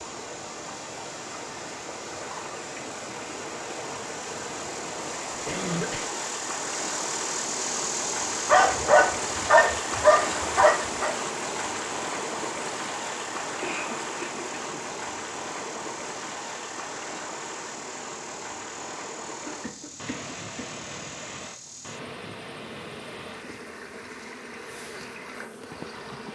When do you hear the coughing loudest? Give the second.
6 s.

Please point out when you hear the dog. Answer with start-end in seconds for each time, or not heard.
8.4-11.1.